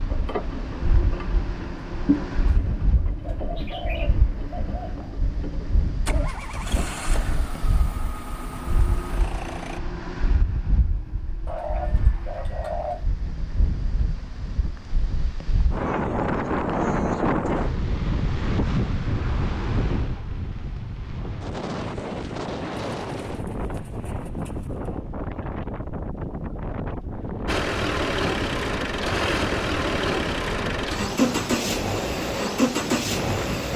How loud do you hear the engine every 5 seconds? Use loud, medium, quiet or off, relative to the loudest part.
medium, medium, off, off, off, loud, loud.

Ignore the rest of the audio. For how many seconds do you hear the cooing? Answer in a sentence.
You can hear the cooing for 6 seconds altogether.